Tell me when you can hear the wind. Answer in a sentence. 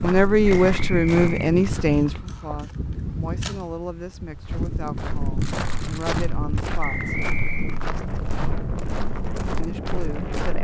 The wind can be heard from 0.0 to 10.6 s.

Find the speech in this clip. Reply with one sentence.
You can hear the speech from 0.0 to 7.2 s and from 9.6 to 10.6 s.